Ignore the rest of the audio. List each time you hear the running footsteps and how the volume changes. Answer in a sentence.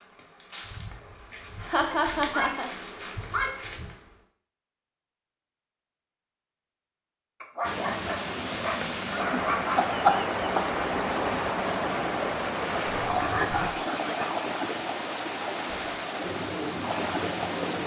The running footsteps can't be heard in this clip.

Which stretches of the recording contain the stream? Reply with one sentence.
The stream can be heard from 7.6 to 17.8 s.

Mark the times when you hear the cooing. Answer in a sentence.
The cooing can be heard from 15.7 to 17.8 s.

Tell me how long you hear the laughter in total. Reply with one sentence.
The laughter can be heard for 3 seconds in total.